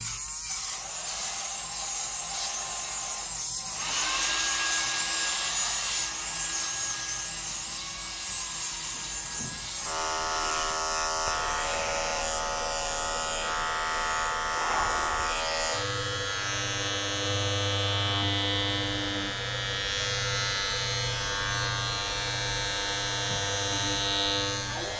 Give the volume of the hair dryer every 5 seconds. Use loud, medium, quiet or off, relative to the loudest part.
loud, loud, medium, medium, medium.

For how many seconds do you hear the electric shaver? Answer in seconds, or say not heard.
25 s.